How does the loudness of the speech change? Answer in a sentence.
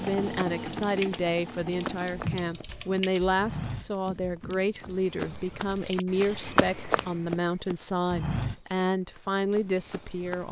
The loudness of the speech stays about the same.